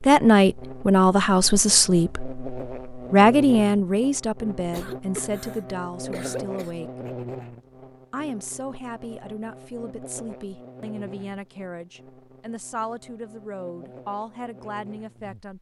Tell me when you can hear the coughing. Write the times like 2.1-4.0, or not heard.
4.7-6.8.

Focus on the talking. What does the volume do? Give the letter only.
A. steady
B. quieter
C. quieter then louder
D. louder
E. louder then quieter
B.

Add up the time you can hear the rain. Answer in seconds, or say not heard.
not heard.